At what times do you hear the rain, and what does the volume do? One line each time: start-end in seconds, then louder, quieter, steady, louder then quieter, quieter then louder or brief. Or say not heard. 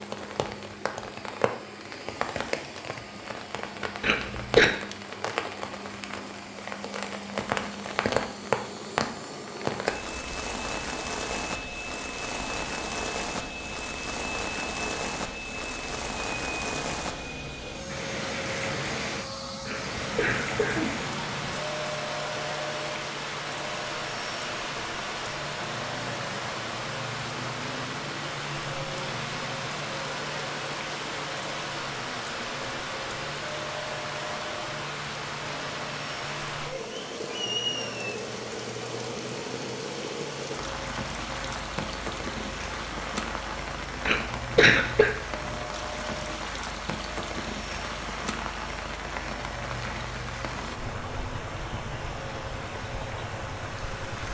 0.0-54.2 steady.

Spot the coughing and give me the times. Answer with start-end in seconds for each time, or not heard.
4.0-4.7, 19.6-21.0, 44.0-45.1.